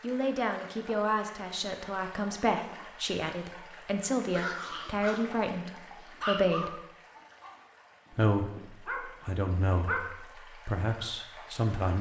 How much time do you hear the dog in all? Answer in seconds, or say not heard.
6 s.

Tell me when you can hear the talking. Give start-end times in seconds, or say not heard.
0.0-6.8, 8.1-11.9.